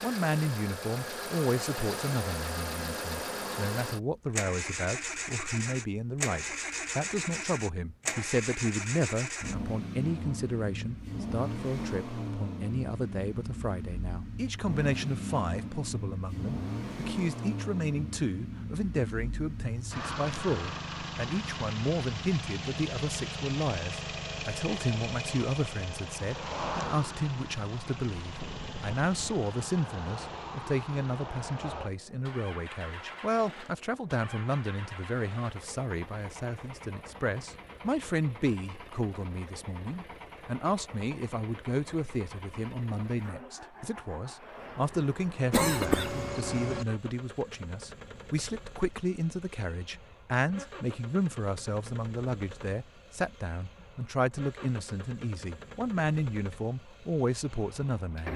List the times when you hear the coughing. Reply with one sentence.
You can hear the coughing from 45.5 to 46.9 s.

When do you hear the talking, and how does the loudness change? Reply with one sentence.
You can hear the talking from 0.0 to 58.3 s, at a steady volume.